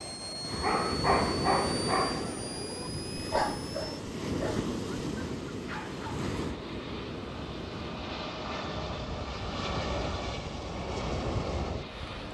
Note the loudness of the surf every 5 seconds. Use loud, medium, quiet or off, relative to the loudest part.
loud, loud, medium.